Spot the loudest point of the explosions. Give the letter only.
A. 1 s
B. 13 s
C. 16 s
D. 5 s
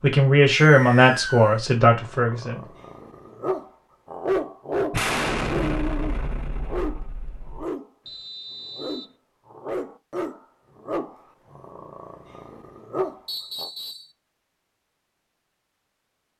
D.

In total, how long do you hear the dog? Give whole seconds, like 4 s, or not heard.
12 s.